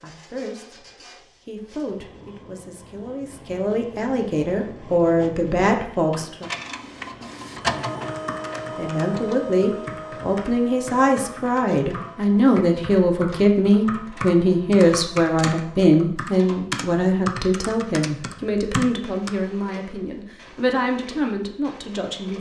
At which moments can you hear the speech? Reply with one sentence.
The speech can be heard from 0.0 to 0.8 s, from 1.4 to 6.5 s and from 8.8 to 22.3 s.